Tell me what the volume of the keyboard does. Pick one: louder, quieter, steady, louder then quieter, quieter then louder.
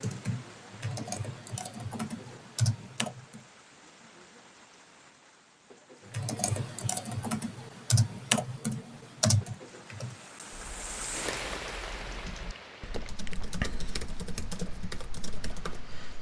louder then quieter.